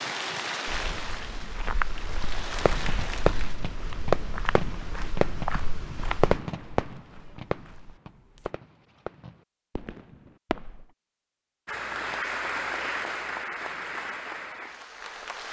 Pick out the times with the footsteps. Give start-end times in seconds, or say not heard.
0.7-8.5.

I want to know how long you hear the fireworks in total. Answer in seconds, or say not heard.
8 s.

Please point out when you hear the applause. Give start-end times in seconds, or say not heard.
0.0-3.5, 11.7-15.4.